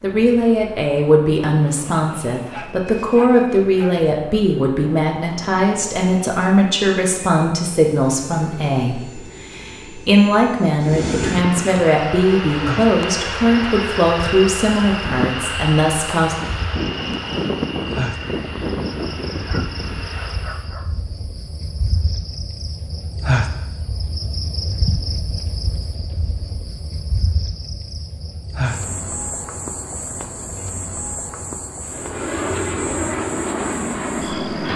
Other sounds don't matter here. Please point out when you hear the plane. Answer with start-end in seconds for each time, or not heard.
0.0-20.7, 31.9-34.7.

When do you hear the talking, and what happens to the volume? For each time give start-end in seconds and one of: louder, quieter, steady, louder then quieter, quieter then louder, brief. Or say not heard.
0.0-16.4 steady.